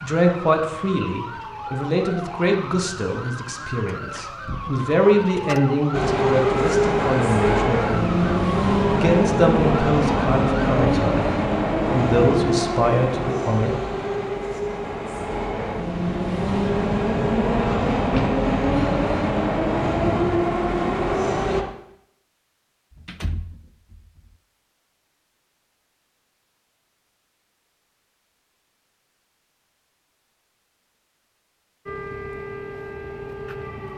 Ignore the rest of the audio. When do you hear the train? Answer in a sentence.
You can hear the train from 5.9 to 21.6 s.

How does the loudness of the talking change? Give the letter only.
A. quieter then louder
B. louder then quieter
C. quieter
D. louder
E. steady
E.